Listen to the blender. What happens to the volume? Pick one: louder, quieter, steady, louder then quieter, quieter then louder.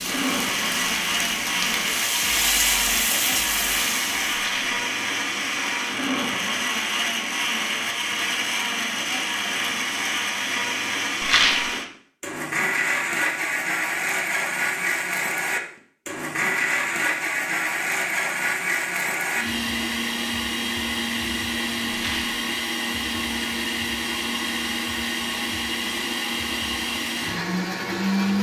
steady.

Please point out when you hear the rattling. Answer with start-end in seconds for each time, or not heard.
4.3-4.7, 11.2-11.7, 21.9-22.4.